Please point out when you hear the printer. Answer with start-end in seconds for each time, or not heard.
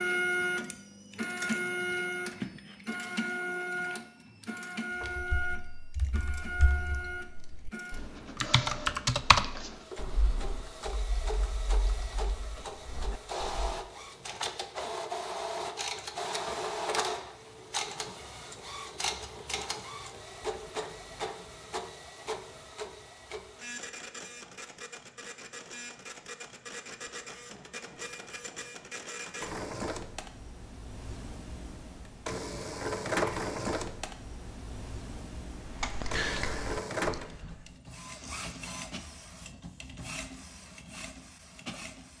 0.0-42.1.